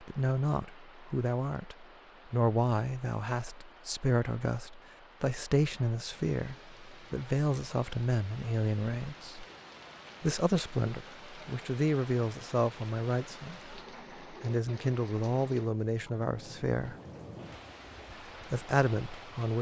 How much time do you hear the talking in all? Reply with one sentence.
You can hear the talking for 17 seconds altogether.